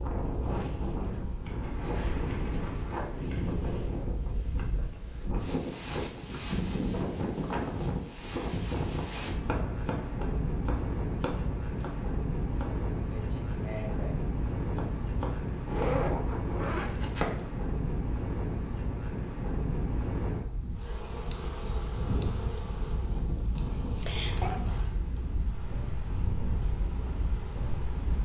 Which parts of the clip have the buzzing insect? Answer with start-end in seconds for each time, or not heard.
20.7-28.1.